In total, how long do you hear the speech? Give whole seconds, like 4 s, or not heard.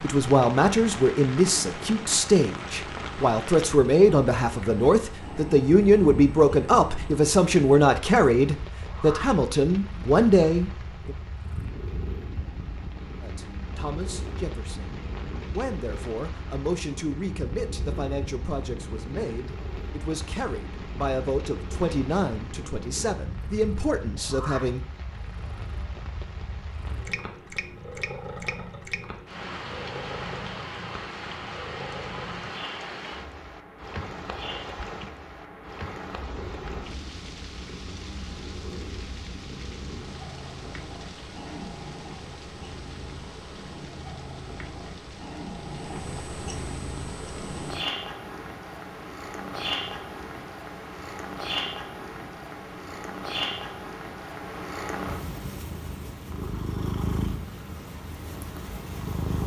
23 s.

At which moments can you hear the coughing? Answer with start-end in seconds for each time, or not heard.
not heard.